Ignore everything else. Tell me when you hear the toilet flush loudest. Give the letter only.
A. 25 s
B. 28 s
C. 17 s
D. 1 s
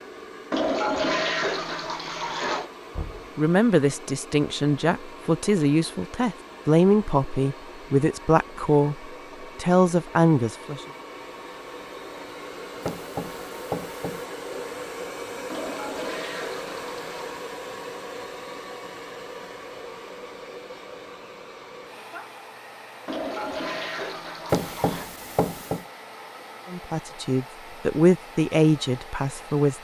D.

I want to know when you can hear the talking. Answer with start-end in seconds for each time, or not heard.
3.4-10.8, 26.7-29.7.